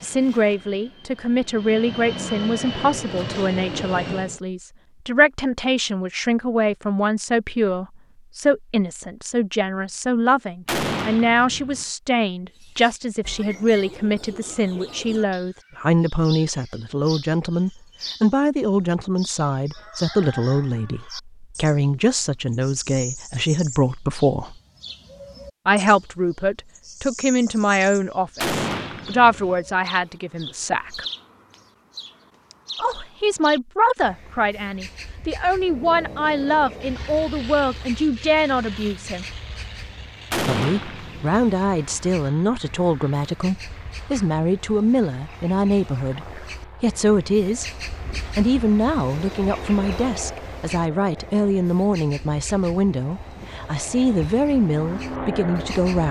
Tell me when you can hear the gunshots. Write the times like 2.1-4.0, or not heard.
10.7-11.8, 28.4-29.6, 40.3-41.4.